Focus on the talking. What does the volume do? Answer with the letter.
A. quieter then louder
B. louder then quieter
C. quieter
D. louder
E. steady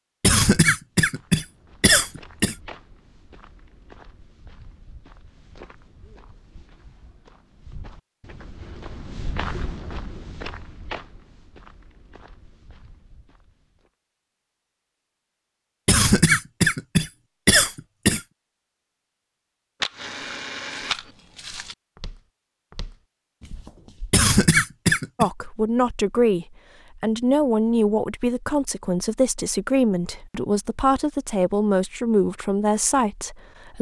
E.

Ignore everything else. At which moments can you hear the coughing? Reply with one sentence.
The coughing can be heard from 0.2 to 2.5 s, from 15.8 to 18.2 s and from 24.1 to 25.3 s.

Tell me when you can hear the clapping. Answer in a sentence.
You can't hear the clapping here.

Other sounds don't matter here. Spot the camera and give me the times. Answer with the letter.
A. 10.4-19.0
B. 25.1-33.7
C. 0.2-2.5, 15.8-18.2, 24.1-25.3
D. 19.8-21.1
D.